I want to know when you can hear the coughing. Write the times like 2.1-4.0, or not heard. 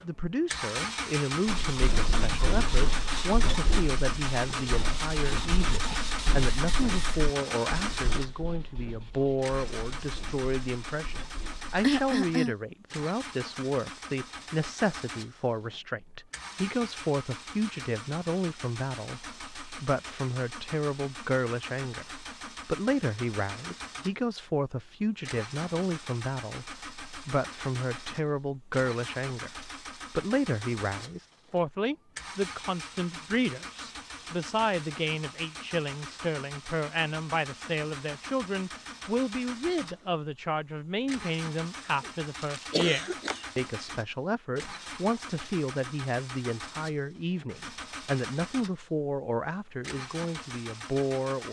11.8-12.6, 41.9-43.6.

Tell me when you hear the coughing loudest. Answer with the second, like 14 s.
12 s.